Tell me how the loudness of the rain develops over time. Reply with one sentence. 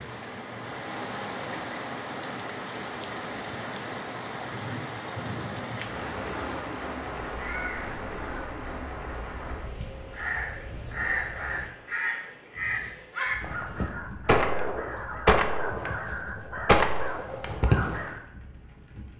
The volume of the rain goes down.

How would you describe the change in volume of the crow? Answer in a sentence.
The volume of the crow goes up.